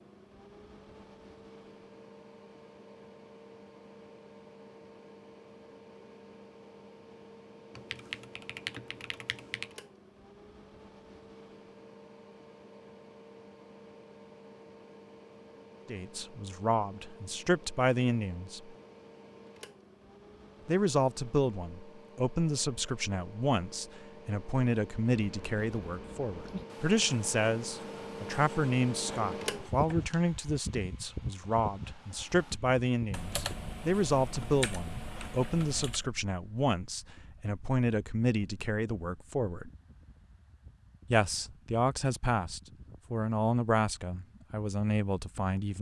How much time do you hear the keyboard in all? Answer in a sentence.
You can hear the keyboard for 5 seconds altogether.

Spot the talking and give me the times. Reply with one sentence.
The talking can be heard from 15.8 to 18.8 s, from 20.6 to 39.7 s and from 41.0 to 45.7 s.